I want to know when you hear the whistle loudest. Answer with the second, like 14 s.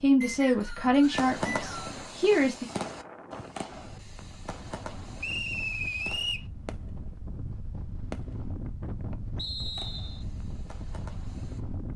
6 s.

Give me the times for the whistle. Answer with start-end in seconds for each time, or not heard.
0.2-2.0, 5.2-6.5, 9.3-10.2.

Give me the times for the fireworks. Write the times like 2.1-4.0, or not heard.
1.0-7.0, 8.1-8.6, 9.6-11.6.